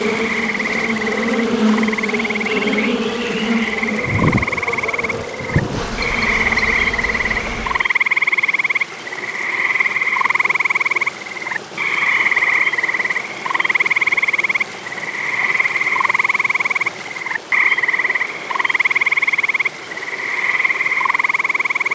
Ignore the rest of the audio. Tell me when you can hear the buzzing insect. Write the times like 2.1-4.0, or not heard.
0.0-7.9.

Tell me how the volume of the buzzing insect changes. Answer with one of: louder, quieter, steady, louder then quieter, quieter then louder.
quieter.